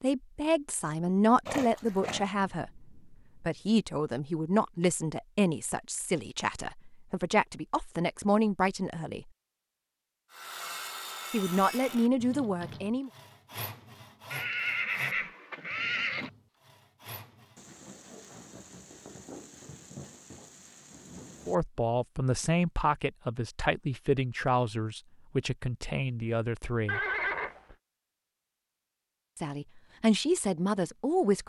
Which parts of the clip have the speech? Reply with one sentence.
The speech can be heard from 0.0 to 9.2 s, from 11.3 to 13.1 s, from 21.4 to 27.0 s and from 29.4 to 31.4 s.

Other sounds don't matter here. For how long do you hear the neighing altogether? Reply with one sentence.
You can hear the neighing for 4 seconds altogether.